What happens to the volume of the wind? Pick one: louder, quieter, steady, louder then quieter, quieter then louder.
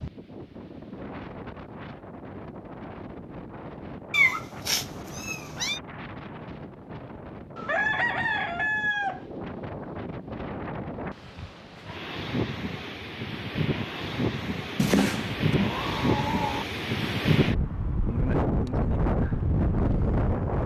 louder.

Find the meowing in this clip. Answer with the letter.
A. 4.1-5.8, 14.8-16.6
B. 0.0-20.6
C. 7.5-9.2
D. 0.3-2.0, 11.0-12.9
A.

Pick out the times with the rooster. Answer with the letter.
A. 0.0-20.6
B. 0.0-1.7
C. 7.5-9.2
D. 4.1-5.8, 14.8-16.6
C.